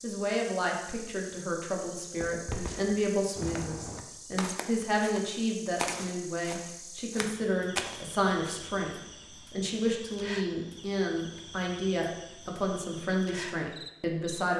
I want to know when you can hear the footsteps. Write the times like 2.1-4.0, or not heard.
2.2-8.6.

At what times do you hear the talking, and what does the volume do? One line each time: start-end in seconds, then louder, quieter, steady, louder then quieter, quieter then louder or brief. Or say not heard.
0.0-14.5 steady.